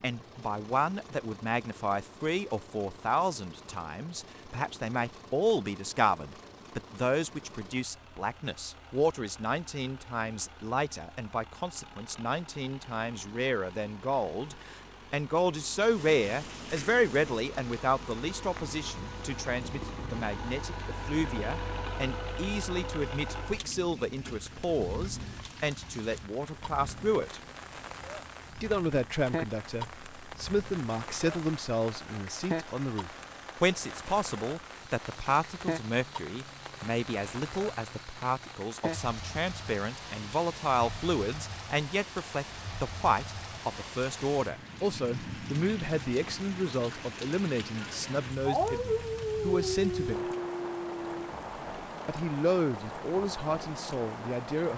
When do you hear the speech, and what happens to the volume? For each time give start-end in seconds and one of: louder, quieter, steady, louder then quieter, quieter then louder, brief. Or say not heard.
0.0-27.4 steady
28.6-50.3 steady
52.0-54.7 brief.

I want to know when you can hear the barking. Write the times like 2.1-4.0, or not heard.
48.5-51.4.